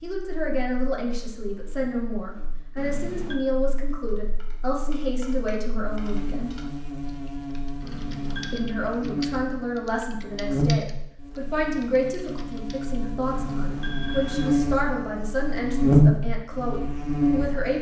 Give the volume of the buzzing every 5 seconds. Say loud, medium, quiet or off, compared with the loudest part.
quiet, quiet, medium, loud.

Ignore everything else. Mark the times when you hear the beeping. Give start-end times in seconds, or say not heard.
2.8-3.4, 7.8-8.7, 13.2-14.6.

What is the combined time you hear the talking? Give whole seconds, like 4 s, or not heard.
16 s.